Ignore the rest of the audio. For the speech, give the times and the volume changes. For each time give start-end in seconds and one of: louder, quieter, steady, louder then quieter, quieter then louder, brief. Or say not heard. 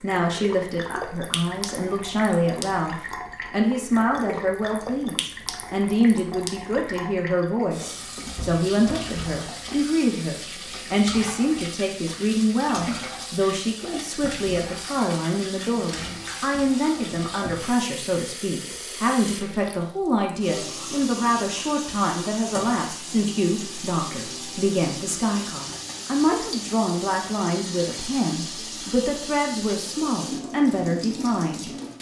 0.0-31.7 steady.